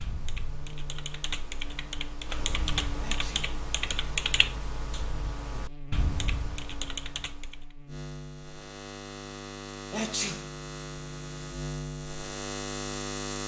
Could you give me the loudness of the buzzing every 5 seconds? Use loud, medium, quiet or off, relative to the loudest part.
medium, medium, loud.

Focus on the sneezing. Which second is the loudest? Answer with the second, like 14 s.
10 s.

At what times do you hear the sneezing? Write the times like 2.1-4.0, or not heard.
3.0-3.5, 9.9-10.5.